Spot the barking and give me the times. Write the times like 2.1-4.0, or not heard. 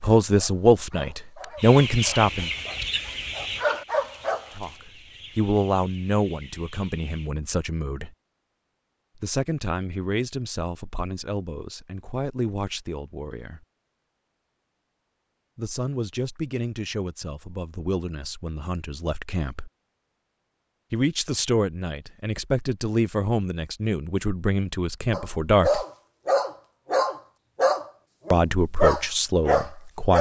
0.2-4.5, 25.1-30.1.